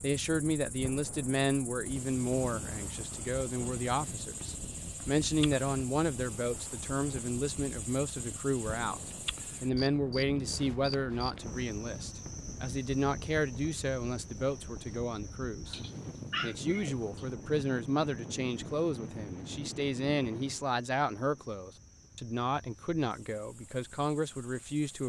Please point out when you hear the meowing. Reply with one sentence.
The meowing can be heard from 15.7 to 17.2 s.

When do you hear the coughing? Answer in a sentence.
You can't hear the coughing here.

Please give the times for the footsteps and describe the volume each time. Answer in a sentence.
The footsteps can't be heard in this clip.